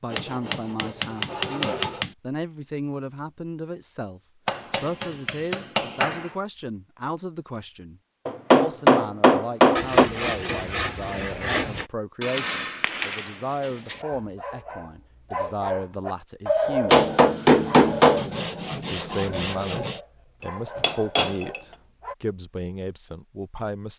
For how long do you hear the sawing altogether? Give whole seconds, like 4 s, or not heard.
6 s.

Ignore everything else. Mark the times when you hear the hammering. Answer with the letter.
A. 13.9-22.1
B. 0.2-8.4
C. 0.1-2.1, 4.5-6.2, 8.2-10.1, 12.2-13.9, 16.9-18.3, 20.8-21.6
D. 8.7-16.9
C.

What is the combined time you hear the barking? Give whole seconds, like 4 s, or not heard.
8 s.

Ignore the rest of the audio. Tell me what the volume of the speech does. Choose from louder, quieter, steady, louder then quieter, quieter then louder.
steady.